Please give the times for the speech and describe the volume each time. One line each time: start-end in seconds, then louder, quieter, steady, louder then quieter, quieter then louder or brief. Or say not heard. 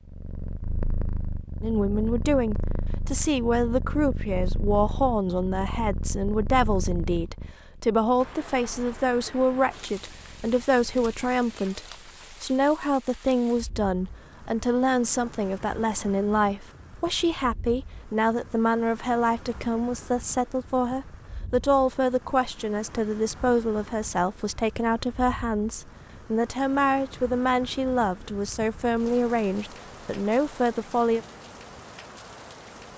1.6-31.2 steady.